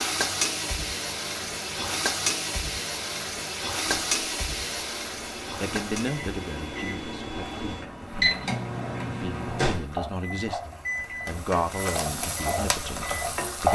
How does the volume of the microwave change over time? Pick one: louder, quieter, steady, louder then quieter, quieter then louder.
louder.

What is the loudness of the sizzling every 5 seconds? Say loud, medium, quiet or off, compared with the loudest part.
loud, medium, loud.